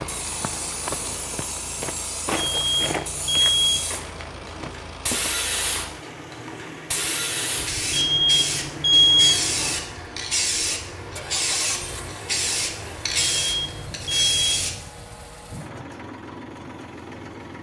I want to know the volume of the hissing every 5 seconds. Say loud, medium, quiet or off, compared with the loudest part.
medium, loud, loud, off.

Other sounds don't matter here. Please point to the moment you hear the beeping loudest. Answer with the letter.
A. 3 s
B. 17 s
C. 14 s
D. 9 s
D.